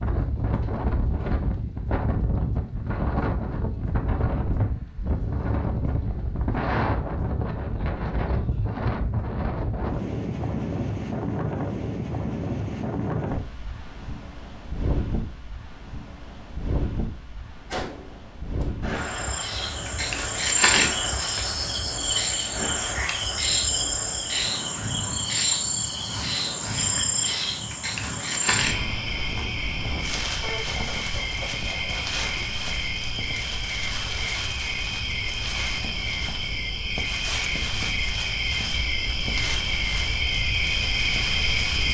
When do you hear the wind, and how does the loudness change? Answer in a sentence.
The wind can be heard from 0.0 to 41.9 s, getting quieter.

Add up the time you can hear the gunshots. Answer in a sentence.
You can hear the gunshots for 3 seconds altogether.